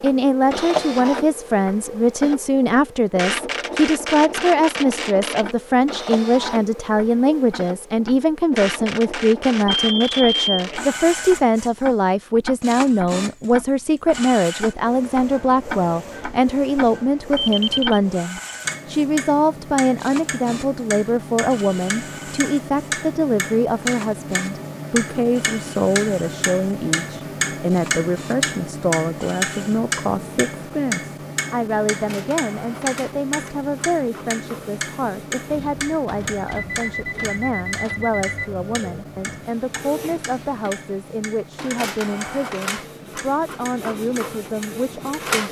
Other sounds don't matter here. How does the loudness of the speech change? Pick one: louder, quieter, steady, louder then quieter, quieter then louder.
quieter.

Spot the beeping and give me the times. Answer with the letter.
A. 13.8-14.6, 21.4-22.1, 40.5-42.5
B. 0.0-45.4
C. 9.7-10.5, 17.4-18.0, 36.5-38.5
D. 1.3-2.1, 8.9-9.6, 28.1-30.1
C.